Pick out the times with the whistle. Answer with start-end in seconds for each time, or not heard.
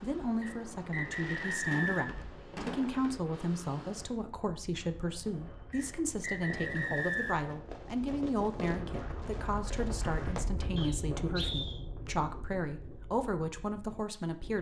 0.4-2.1, 5.7-7.5, 10.8-11.8.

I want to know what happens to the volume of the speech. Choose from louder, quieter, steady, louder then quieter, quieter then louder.
steady.